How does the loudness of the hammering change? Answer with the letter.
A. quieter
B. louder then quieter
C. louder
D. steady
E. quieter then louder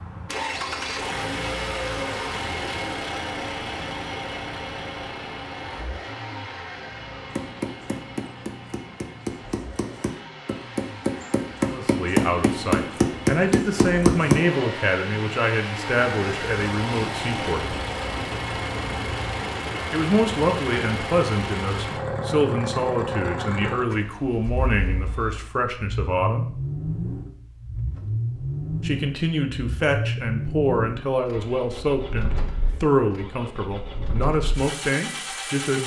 C.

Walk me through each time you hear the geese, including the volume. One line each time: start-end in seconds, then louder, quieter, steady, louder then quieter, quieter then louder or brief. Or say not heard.
not heard.